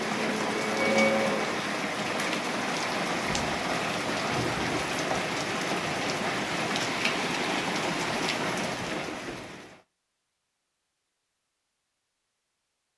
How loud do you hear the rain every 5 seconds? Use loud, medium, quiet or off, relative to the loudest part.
loud, loud, off.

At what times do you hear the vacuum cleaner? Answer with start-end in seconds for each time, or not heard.
0.0-1.4.